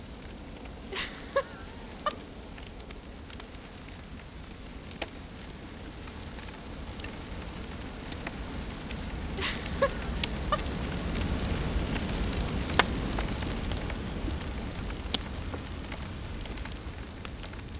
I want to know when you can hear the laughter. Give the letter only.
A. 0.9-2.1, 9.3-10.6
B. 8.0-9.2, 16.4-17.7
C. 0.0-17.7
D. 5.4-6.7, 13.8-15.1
A.